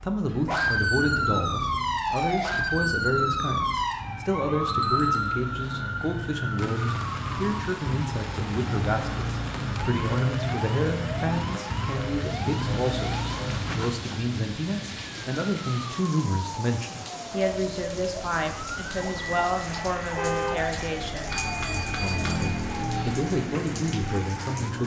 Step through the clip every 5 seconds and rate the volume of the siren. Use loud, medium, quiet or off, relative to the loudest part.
loud, medium, medium, medium, medium.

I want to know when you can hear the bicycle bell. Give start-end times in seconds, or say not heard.
4.7-5.3, 21.3-23.1.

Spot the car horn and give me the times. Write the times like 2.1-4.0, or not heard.
19.9-20.6.